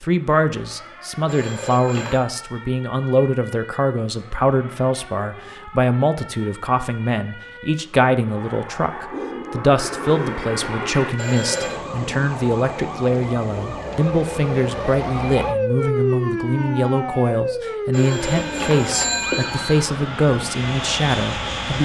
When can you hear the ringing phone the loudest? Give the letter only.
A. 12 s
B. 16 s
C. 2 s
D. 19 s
D.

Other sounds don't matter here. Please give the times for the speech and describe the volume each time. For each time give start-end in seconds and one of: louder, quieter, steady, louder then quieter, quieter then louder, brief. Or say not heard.
0.0-21.8 steady.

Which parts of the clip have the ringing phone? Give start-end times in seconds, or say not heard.
1.2-2.2, 11.2-11.8, 17.9-19.9.